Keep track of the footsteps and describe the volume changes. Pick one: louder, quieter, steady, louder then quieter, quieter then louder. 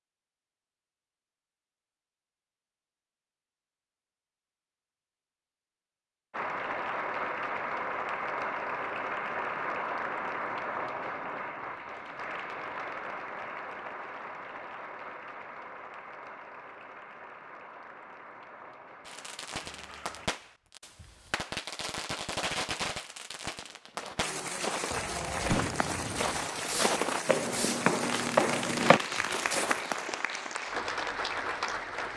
louder.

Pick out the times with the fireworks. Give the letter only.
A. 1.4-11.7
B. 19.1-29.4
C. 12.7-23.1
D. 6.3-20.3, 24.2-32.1
B.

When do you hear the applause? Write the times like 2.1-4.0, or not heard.
6.3-20.3, 24.2-32.1.